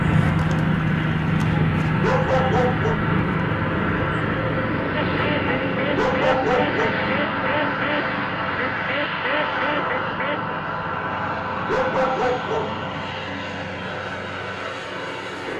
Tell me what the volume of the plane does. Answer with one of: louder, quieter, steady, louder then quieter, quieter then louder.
quieter.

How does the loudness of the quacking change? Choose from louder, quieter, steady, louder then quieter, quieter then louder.
steady.